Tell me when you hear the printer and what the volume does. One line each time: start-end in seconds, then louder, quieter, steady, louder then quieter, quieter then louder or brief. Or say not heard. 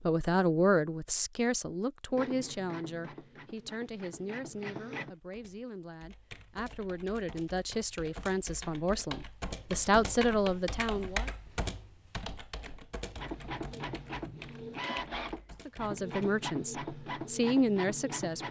2.1-5.1 brief
13.2-18.4 steady.